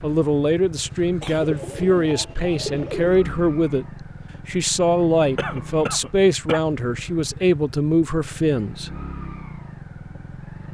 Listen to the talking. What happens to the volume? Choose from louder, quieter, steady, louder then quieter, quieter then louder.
steady.